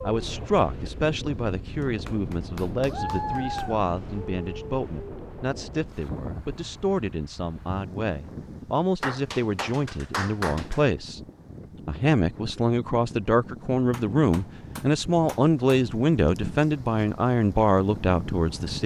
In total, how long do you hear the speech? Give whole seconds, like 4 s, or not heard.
18 s.